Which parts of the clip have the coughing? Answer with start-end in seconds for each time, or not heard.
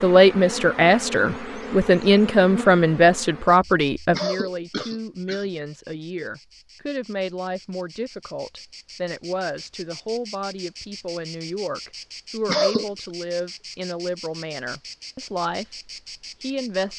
4.1-5.5, 12.4-12.9.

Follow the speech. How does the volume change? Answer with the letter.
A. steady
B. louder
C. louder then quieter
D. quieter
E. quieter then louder
D.